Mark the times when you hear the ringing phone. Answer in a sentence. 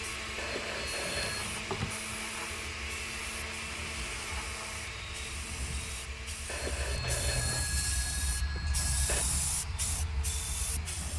You can hear the ringing phone from 0.3 to 1.4 s and from 6.5 to 9.2 s.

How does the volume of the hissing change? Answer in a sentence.
The loudness of the hissing goes up.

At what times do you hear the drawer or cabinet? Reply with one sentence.
You can hear the drawer or cabinet from 1.0 to 1.9 s.